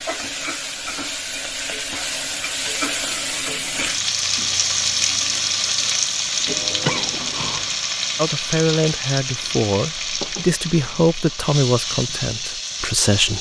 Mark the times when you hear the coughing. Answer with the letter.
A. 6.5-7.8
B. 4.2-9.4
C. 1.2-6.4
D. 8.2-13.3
A.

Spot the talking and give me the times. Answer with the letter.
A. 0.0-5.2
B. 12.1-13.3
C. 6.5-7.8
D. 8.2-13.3
D.